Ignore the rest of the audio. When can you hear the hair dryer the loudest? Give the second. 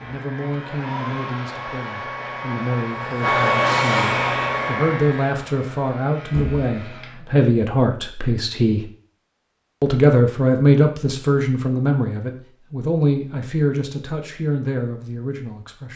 4 s.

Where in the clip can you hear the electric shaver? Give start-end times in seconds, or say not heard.
0.0-7.2.